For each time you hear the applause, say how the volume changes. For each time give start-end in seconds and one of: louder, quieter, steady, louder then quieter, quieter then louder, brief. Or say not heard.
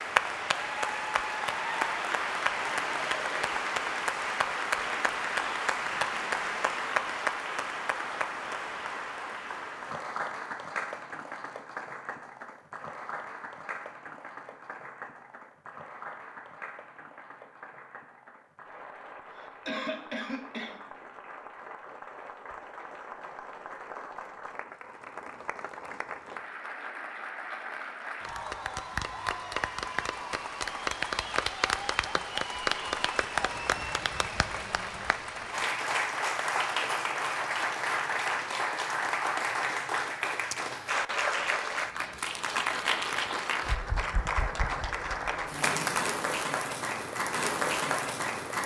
0.0-48.6 quieter then louder.